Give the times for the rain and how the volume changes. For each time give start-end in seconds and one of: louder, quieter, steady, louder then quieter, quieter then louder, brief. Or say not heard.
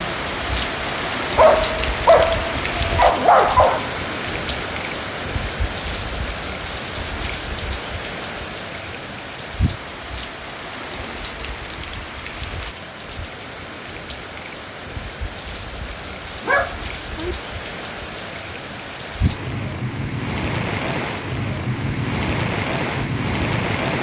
0.0-23.9 quieter then louder.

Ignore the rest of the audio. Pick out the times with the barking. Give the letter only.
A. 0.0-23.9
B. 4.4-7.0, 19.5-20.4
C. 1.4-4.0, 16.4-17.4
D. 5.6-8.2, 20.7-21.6
C.